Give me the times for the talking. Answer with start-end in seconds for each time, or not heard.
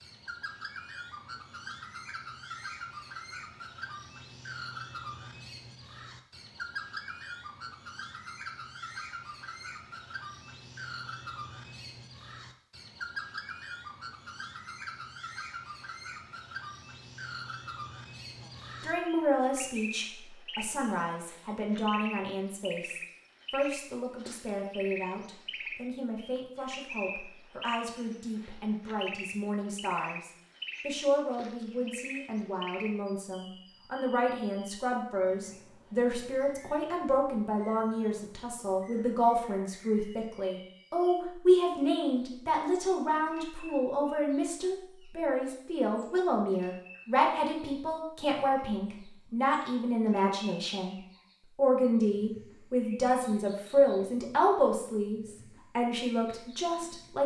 18.8-51.0, 51.5-57.2.